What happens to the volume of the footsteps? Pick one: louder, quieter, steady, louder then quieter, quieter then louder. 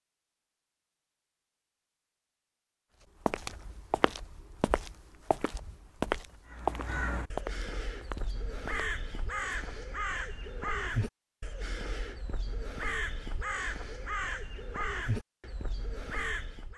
louder then quieter.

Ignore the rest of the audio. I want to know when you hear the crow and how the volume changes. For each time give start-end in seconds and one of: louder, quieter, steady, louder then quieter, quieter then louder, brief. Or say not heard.
6.5-16.7 steady.